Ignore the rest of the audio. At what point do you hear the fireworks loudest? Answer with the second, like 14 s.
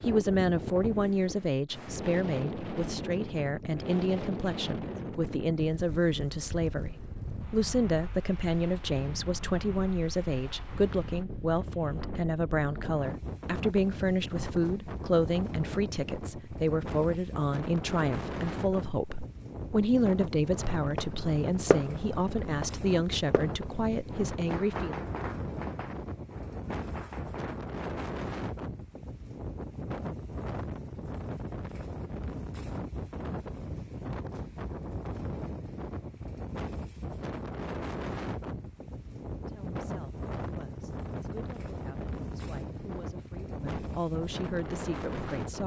22 s.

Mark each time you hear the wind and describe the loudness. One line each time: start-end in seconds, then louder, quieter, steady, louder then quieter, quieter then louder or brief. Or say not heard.
0.0-45.6 steady.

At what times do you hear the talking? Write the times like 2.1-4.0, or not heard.
0.0-24.9, 39.4-45.6.